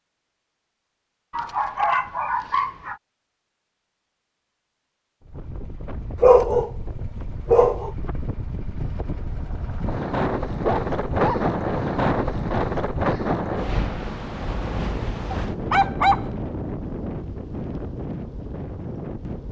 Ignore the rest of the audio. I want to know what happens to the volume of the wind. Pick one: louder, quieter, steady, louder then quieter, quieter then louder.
louder then quieter.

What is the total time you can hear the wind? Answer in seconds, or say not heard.
14 s.